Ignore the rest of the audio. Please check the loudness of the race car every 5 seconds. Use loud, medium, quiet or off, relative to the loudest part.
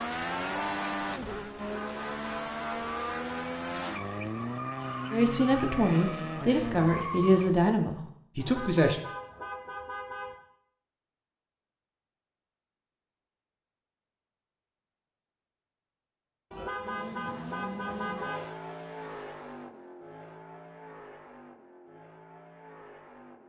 loud, loud, off, medium, quiet.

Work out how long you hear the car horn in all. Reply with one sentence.
The car horn can be heard for 6 seconds in total.